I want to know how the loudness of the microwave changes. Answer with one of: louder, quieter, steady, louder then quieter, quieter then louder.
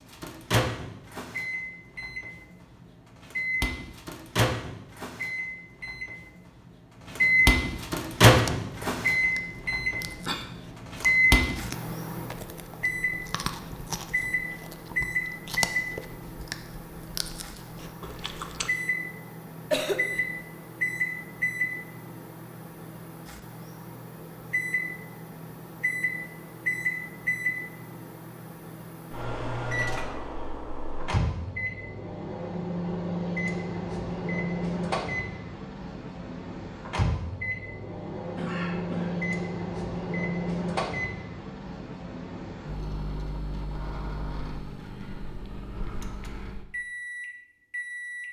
quieter.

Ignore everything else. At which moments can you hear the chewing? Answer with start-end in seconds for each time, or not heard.
8.3-18.7.